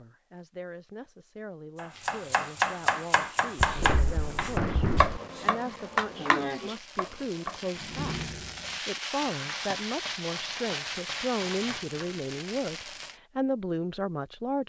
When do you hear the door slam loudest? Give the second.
5 s.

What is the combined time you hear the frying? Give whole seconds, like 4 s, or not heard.
11 s.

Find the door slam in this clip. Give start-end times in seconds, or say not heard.
3.5-5.2, 7.8-8.8.